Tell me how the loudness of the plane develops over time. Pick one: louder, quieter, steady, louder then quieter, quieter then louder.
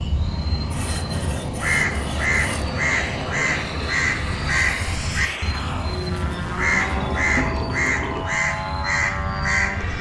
steady.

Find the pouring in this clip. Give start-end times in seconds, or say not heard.
6.2-8.2.